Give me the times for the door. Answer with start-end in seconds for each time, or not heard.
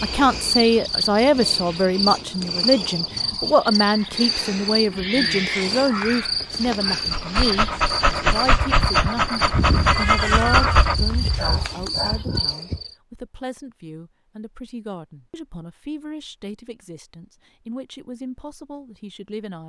not heard.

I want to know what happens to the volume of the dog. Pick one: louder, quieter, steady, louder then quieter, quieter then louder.
quieter.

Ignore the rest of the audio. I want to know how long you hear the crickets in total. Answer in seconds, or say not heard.
13 s.